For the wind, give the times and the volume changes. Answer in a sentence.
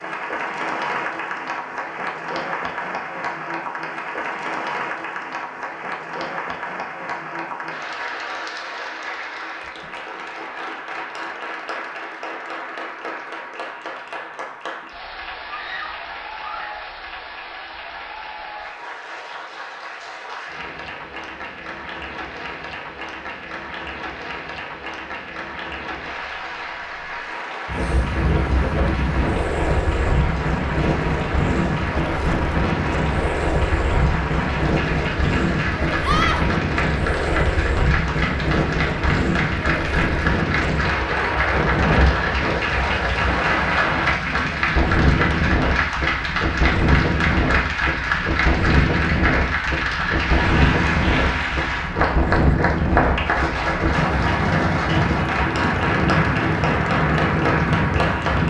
The wind can be heard from 27.6 to 58.4 s, at a steady volume.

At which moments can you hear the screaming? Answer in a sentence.
The screaming can be heard from 15.4 to 16.9 s and from 36.0 to 36.5 s.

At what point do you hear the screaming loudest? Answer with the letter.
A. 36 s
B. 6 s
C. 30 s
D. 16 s
A.